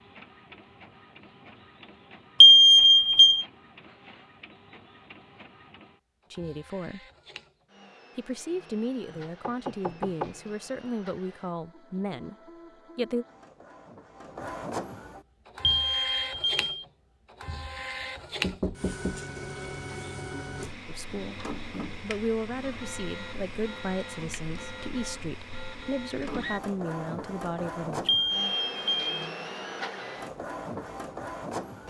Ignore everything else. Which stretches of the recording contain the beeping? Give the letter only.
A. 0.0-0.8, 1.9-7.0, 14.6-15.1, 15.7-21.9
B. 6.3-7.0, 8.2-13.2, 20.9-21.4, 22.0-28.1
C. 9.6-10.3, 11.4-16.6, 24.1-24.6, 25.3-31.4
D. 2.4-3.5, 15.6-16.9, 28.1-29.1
D.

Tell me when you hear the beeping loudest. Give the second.
3 s.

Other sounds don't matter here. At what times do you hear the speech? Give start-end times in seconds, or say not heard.
6.3-7.0, 8.2-13.2, 20.9-21.4, 22.0-28.1.